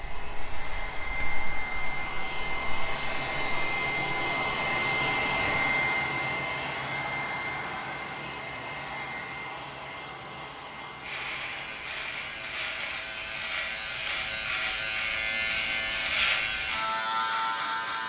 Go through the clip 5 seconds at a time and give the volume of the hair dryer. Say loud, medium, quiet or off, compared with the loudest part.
loud, loud, quiet, quiet.